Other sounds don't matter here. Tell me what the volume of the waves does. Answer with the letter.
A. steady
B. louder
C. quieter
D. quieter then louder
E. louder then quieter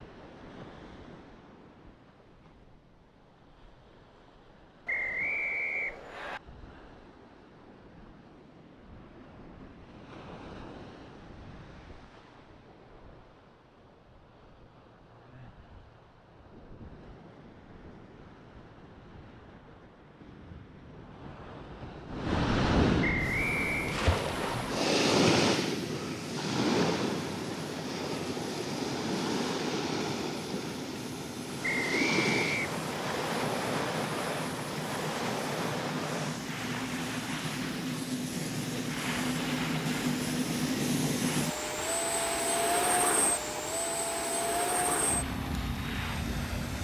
E.